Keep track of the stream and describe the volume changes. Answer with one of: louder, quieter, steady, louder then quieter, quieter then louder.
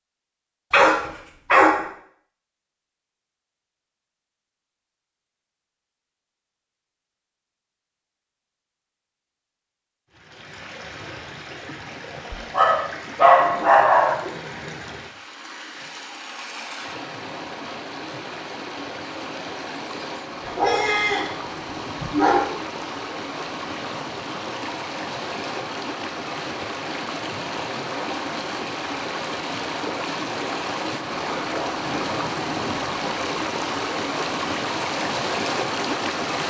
louder.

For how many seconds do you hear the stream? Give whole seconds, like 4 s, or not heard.
26 s.